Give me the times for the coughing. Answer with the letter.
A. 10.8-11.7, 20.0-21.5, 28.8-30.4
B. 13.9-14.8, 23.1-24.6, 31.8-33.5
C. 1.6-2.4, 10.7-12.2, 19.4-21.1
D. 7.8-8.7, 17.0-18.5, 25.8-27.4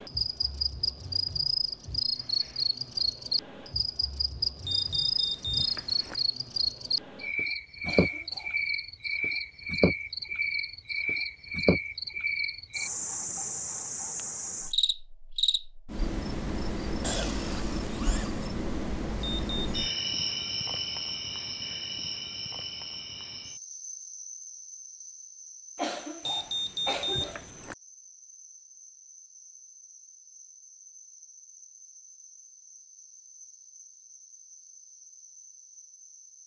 D.